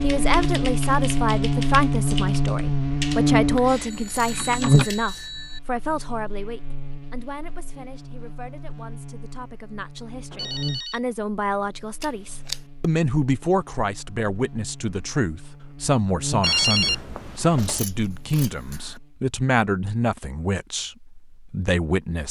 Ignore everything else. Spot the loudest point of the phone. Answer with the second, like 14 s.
17 s.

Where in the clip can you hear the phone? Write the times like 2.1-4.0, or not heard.
3.7-5.6, 10.3-11.0, 16.4-17.8.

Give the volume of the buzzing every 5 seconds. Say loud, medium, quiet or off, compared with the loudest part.
loud, quiet, quiet, quiet, off.